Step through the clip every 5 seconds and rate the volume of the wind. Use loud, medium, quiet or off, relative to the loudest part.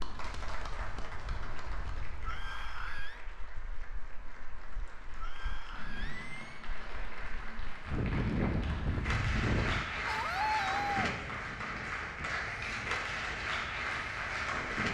quiet, loud, quiet.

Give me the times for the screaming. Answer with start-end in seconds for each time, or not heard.
2.2-3.2, 5.2-6.7, 10.1-11.2.